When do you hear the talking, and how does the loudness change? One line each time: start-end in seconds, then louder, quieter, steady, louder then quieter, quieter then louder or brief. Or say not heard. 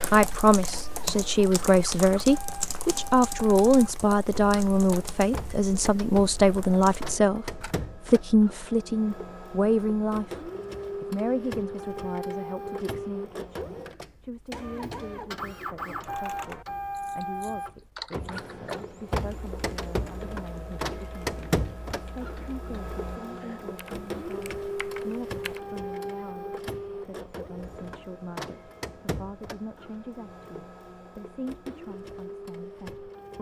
0.0-33.3 quieter.